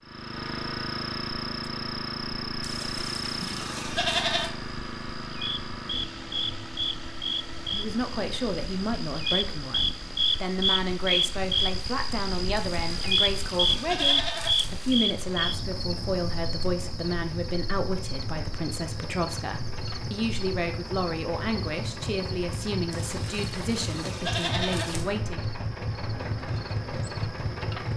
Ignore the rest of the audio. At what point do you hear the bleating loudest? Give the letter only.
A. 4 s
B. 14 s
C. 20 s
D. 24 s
A.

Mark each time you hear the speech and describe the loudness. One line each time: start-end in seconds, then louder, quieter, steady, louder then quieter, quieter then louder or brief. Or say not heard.
7.7-25.4 steady.